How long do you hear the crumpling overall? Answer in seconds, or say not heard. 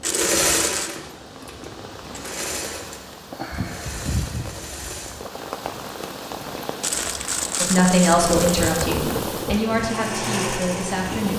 3 s.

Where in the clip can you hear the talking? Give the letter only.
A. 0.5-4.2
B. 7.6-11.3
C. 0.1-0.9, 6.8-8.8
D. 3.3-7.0
B.